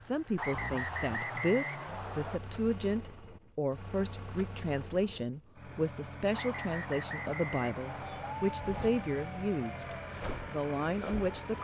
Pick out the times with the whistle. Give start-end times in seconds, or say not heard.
0.3-2.4, 6.3-8.3.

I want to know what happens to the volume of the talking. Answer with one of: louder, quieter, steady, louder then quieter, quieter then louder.
steady.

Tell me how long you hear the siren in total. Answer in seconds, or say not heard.
4 s.